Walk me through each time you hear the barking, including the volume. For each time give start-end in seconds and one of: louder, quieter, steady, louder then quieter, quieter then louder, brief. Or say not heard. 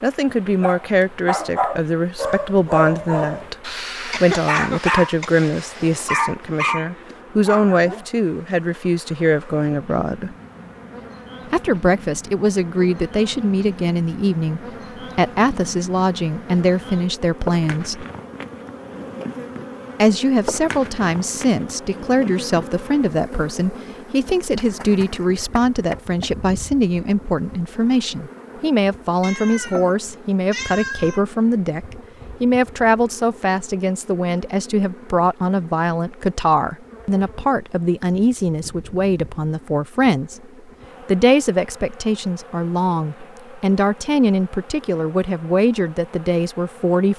0.6-8.0 steady.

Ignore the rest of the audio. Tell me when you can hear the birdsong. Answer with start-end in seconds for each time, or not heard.
not heard.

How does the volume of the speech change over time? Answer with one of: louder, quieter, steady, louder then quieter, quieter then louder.
steady.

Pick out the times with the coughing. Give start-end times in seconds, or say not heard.
4.1-5.3.